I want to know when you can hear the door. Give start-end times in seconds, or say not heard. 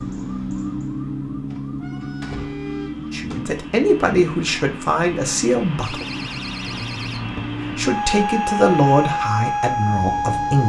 1.4-3.5, 5.8-7.5.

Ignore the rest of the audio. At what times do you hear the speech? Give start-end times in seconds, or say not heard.
3.1-6.0, 7.8-10.6.